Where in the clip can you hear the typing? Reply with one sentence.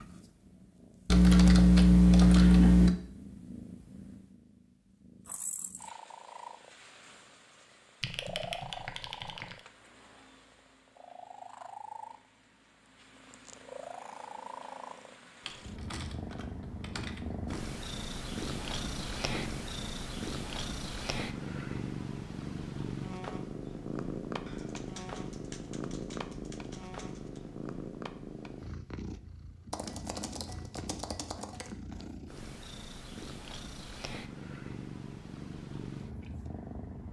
The typing can be heard from 1.1 to 3.0 s, from 8.0 to 9.6 s, from 15.4 to 17.6 s, from 24.4 to 27.4 s and from 29.7 to 31.7 s.